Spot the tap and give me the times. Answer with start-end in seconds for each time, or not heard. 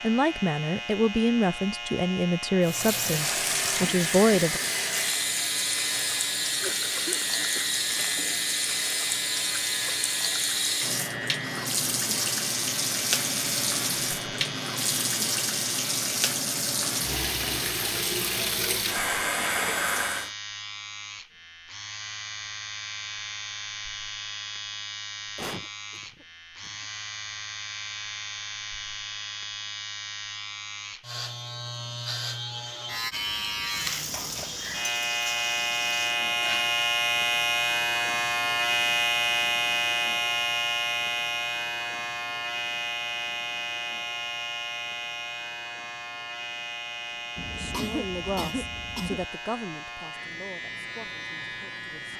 2.6-20.3, 33.6-36.8.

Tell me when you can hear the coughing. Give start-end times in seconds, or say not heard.
6.5-7.7, 25.4-26.9, 47.4-49.2.